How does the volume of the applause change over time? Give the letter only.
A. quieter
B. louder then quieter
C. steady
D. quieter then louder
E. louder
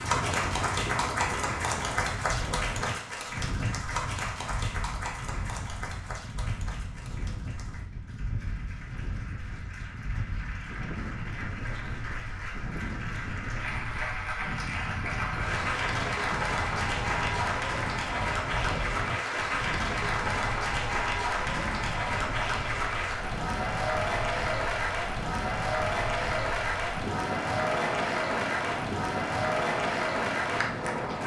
D.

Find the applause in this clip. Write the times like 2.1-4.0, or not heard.
0.0-31.2.